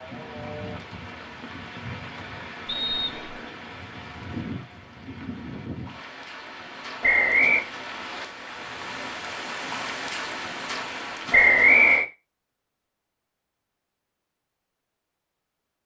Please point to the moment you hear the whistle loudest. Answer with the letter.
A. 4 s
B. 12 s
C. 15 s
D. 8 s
B.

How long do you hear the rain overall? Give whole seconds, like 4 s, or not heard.
12 s.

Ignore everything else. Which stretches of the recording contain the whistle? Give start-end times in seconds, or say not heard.
2.6-3.5, 7.0-7.7, 11.3-12.1.